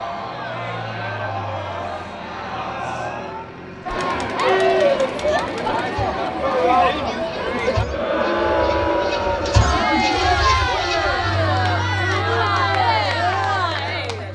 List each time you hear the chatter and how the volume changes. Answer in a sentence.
The chatter can be heard from 0.0 to 14.2 s, getting louder.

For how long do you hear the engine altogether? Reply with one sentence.
You can hear the engine for 14 seconds altogether.